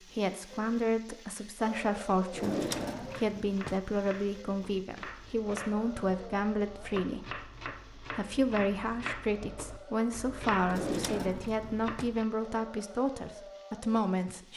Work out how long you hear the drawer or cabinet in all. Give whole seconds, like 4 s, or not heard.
3 s.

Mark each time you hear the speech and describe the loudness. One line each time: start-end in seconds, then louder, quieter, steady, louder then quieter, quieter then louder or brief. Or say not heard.
0.1-14.5 steady.